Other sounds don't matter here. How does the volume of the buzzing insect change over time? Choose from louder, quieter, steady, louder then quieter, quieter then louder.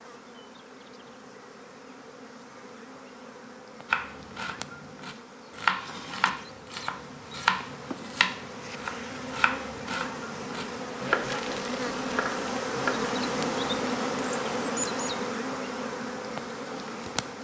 louder.